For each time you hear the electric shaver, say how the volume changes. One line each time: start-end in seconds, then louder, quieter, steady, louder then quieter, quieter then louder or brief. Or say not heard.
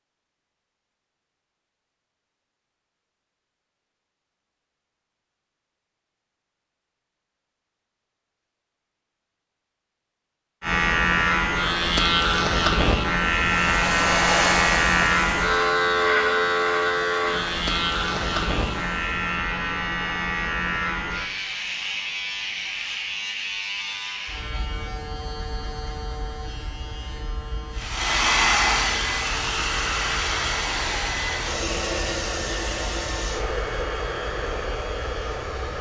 10.6-35.7 quieter.